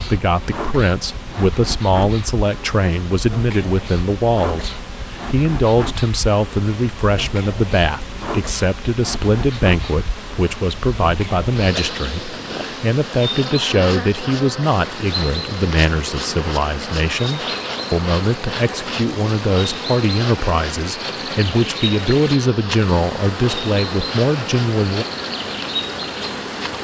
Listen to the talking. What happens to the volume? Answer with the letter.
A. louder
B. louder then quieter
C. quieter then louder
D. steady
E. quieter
D.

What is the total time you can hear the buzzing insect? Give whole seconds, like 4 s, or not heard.
27 s.